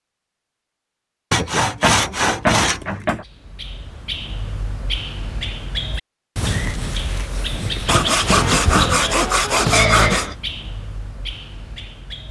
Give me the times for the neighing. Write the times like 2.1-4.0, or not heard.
9.7-10.3.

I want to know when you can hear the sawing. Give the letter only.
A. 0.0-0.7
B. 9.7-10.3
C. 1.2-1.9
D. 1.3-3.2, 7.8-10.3
D.